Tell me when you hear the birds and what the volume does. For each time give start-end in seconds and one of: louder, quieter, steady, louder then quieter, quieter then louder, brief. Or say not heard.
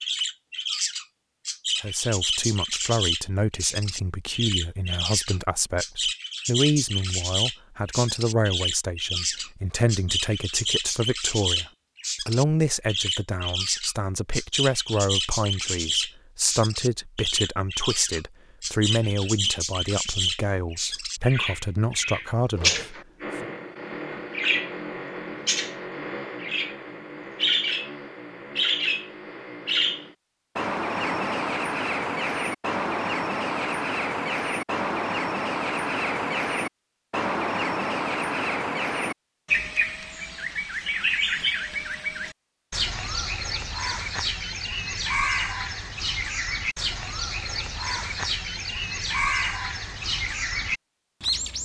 0.0-51.6 steady.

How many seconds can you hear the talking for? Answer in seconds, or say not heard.
21 s.